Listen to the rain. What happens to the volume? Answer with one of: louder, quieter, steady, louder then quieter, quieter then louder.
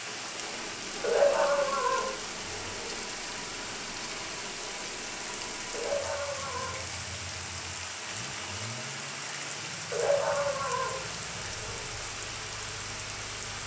steady.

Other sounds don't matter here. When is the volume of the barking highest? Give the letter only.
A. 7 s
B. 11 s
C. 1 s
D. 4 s
C.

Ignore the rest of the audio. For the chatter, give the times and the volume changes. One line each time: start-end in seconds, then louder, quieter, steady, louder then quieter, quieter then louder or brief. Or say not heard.
not heard.